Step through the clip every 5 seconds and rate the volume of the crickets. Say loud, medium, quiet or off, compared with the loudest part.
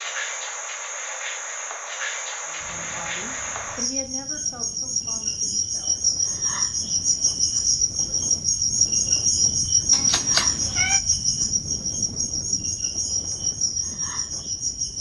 medium, loud, loud.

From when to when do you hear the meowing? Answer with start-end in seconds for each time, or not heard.
9.9-11.0.